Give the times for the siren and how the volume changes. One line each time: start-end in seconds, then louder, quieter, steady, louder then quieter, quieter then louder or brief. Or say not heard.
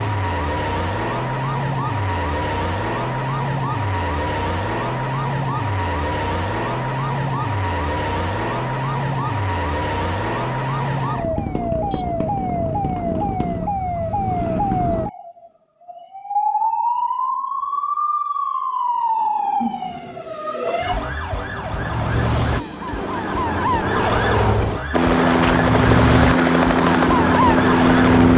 0.0-28.3 steady.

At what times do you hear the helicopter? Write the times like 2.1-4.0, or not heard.
24.9-28.3.